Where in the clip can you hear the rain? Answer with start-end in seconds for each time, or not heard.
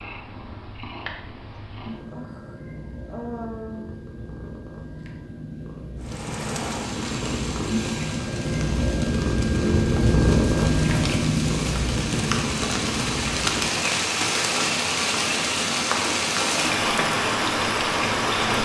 6.0-18.6.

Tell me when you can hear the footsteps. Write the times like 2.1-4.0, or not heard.
not heard.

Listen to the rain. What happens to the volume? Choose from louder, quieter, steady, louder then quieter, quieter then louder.
louder.